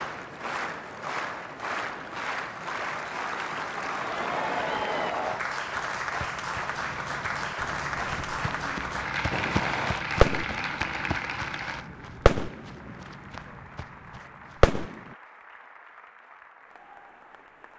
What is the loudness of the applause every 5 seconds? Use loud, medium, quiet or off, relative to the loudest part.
loud, loud, medium, quiet.